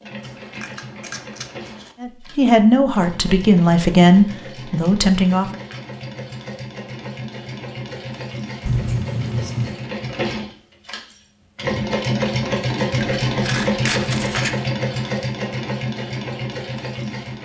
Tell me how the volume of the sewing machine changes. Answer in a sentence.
The volume of the sewing machine goes up.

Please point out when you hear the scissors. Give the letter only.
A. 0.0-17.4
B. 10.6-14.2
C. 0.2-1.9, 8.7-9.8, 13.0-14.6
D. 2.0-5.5
C.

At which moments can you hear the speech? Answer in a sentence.
You can hear the speech from 2.0 to 5.5 s.